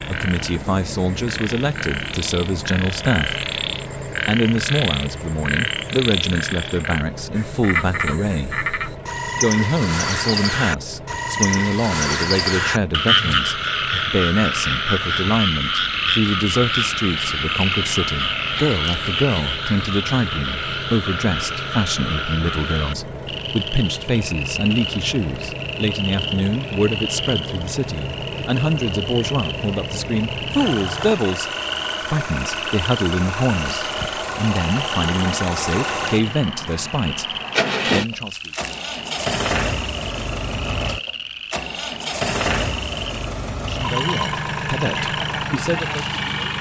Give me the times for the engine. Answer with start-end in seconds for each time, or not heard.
0.0-46.5.